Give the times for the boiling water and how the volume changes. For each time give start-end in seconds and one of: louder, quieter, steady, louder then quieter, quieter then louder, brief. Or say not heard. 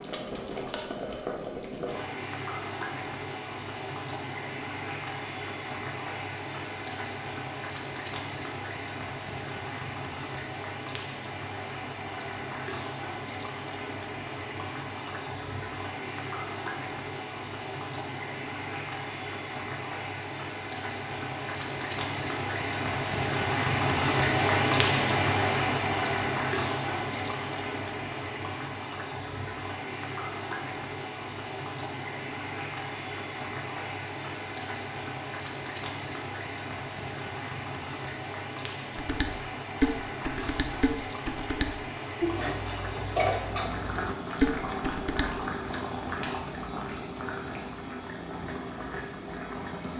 0.0-49.9 louder then quieter.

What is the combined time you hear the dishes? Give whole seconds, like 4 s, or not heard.
6 s.